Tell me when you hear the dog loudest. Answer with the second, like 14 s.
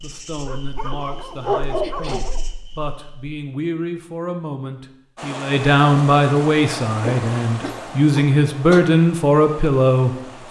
2 s.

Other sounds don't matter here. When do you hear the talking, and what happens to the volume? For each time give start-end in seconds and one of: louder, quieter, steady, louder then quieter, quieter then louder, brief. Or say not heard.
0.0-10.2 louder.